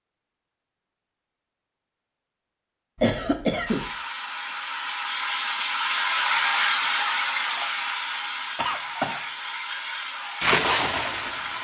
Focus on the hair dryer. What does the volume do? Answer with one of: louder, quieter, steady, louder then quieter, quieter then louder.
louder then quieter.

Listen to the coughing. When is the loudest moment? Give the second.
3 s.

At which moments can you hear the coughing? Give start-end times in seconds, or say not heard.
3.0-3.9, 8.6-9.2.